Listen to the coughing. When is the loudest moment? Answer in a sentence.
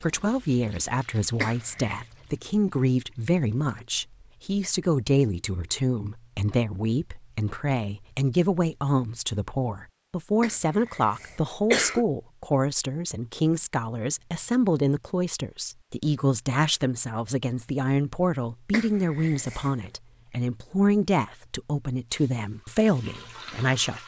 The loudest moment of the coughing is at 12 seconds.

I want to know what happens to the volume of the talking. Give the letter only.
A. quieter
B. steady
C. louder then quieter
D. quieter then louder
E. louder
B.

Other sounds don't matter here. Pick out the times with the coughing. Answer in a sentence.
You can hear the coughing from 1.4 to 2.0 s, from 10.4 to 12.1 s and from 18.7 to 19.9 s.